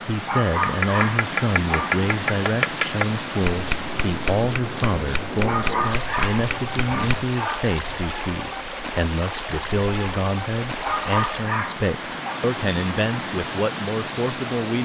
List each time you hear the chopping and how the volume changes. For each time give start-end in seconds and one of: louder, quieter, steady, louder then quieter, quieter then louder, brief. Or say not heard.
0.6-7.3 quieter.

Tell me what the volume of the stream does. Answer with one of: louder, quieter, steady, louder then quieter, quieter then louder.
steady.